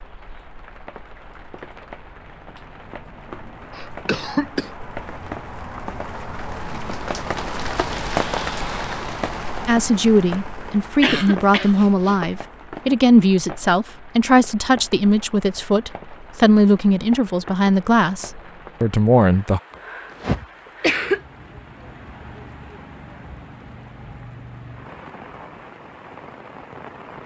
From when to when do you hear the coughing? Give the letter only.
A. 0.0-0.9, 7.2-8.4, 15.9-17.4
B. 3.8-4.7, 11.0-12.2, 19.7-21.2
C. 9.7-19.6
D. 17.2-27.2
B.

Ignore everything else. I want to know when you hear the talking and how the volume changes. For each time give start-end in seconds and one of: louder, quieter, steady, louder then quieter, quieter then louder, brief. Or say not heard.
9.7-19.6 steady.